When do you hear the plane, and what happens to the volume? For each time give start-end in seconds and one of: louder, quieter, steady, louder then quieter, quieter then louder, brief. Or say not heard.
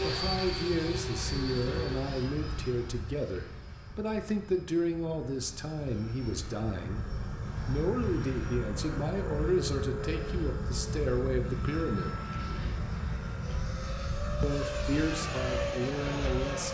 0.0-16.6 quieter then louder.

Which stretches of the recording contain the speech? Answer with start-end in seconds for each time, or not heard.
0.0-12.2, 14.4-16.6.